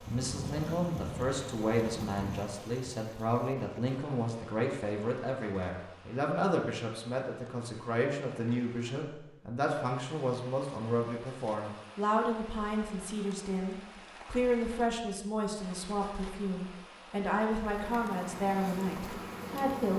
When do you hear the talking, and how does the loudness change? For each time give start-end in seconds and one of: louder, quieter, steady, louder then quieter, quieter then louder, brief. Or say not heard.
0.1-19.9 steady.